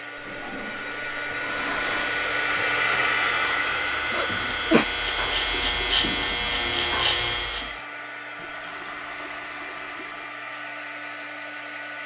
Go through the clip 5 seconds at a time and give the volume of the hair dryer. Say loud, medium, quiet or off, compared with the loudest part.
loud, medium, medium.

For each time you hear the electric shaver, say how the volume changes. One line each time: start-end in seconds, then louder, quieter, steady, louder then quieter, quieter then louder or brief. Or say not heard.
1.4-7.8 louder.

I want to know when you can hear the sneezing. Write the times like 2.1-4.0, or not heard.
4.1-4.8.